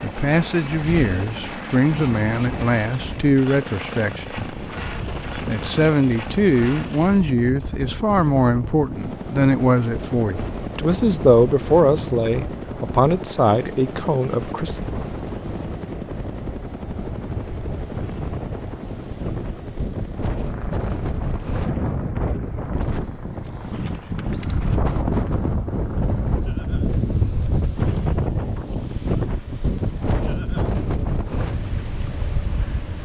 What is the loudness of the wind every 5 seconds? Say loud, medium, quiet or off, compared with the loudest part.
medium, medium, medium, medium, loud, loud, loud.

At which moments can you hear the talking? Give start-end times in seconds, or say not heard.
0.0-4.5, 5.5-14.8.